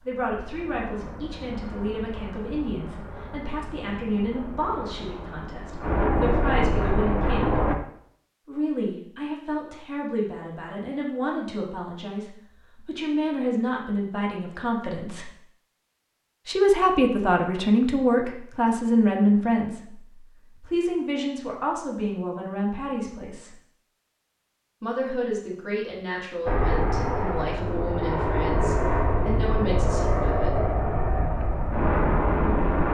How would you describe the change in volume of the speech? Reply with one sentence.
The volume of the speech goes up, then down.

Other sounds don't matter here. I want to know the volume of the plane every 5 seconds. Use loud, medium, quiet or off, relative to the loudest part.
quiet, loud, off, off, off, loud, loud.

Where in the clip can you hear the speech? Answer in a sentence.
The speech can be heard from 0.1 to 7.7 s, from 8.4 to 15.3 s, from 16.4 to 23.6 s and from 24.8 to 30.7 s.